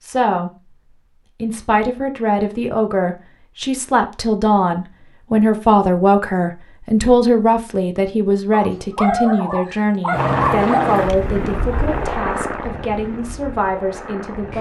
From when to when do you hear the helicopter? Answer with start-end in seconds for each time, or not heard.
10.1-14.5.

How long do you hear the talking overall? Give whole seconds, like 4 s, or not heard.
14 s.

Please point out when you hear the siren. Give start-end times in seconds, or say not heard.
not heard.